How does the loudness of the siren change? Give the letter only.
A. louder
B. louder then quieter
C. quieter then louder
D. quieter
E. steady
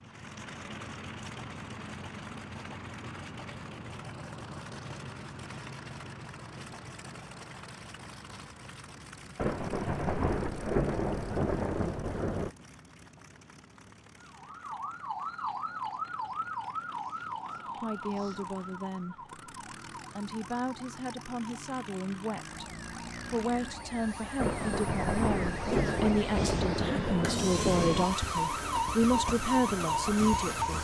C.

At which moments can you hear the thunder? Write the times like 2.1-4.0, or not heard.
9.3-12.5, 24.4-28.1.